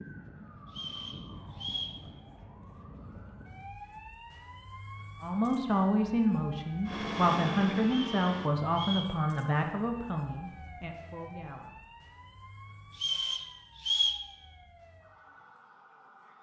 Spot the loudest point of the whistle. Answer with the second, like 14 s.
14 s.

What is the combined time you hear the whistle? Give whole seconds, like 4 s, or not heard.
4 s.